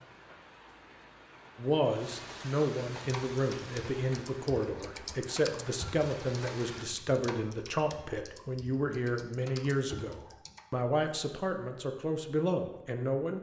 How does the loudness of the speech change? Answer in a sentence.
The volume of the speech stays about the same.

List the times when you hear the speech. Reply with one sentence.
The speech can be heard from 1.6 to 13.3 s.